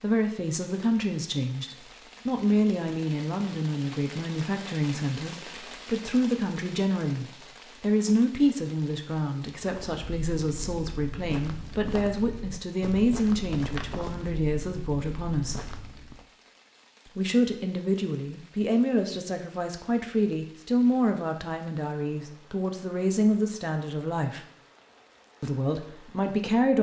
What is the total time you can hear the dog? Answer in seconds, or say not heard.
not heard.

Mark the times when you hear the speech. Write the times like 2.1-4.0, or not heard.
0.0-15.7, 17.1-24.4, 25.4-26.7.